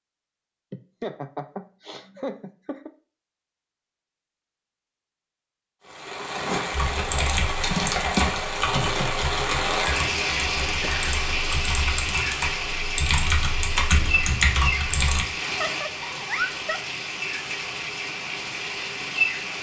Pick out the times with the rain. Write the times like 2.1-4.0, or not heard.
5.8-19.5.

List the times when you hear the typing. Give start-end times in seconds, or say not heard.
6.7-15.2.